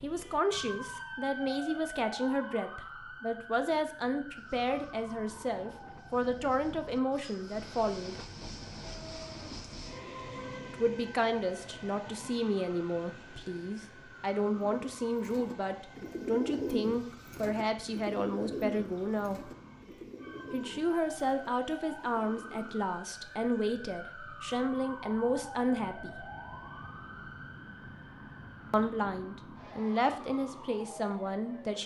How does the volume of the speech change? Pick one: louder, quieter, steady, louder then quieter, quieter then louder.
steady.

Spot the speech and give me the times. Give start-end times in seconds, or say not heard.
0.0-8.2, 10.7-19.5, 20.5-26.2, 28.7-31.8.